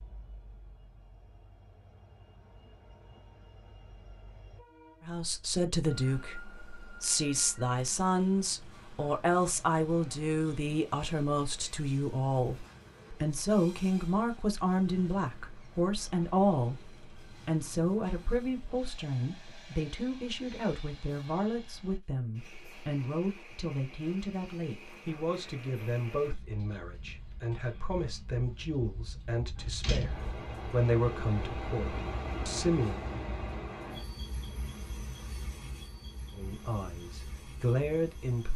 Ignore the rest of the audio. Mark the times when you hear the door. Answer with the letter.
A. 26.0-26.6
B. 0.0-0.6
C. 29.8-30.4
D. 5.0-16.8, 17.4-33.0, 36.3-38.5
C.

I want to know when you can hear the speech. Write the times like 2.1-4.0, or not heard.
5.0-16.8, 17.4-33.0, 36.3-38.5.